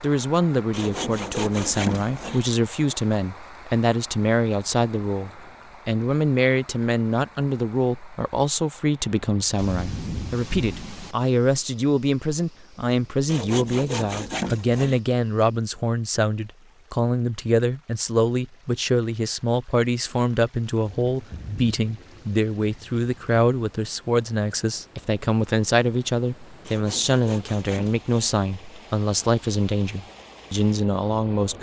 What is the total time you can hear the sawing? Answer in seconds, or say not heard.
5 s.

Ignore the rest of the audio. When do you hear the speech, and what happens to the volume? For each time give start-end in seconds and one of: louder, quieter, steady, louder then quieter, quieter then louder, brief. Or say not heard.
0.0-31.5 steady.